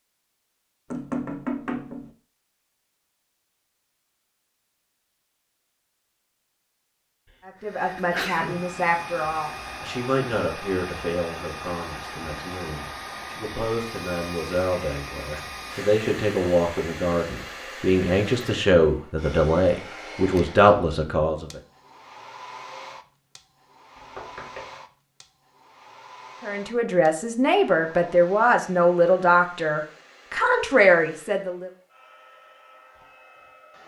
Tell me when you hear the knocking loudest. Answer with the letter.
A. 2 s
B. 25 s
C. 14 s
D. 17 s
A.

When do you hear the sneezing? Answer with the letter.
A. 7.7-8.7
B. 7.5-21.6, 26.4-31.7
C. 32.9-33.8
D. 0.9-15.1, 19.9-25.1
A.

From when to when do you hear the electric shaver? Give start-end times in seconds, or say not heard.
not heard.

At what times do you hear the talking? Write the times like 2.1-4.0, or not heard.
7.5-21.6, 26.4-31.7.